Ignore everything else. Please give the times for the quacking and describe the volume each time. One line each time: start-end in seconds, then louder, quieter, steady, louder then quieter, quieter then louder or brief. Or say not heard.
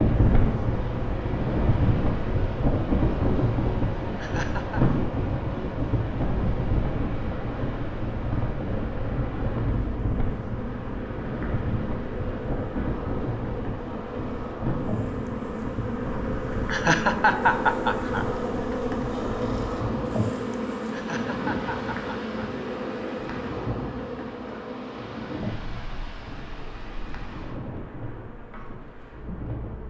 not heard.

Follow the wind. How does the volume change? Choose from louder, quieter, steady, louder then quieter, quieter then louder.
quieter.